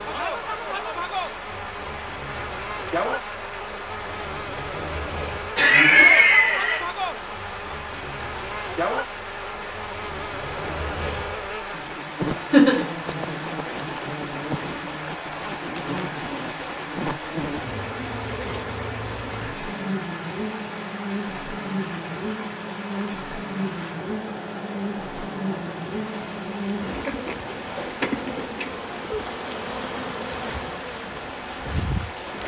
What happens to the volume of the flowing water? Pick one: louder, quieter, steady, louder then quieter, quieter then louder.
steady.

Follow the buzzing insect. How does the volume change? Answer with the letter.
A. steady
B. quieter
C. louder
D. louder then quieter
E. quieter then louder
A.